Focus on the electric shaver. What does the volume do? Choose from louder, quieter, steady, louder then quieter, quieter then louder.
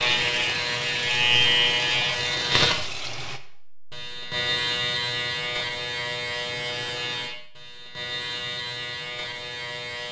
quieter.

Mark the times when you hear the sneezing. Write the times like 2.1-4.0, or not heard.
not heard.